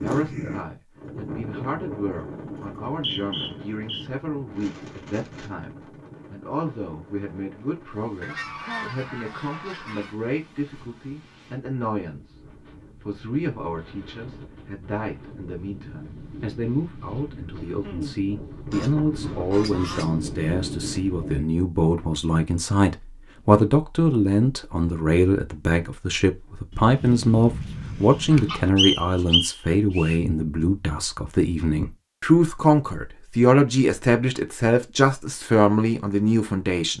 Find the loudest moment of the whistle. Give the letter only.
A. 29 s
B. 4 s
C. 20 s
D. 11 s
A.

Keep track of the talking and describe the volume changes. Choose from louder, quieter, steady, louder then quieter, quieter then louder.
louder.